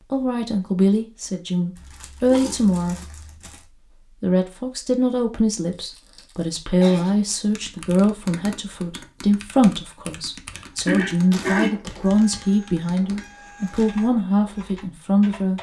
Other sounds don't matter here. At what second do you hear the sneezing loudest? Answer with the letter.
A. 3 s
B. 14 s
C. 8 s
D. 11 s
D.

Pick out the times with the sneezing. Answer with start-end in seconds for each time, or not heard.
2.3-3.0, 6.8-7.8, 10.8-11.8.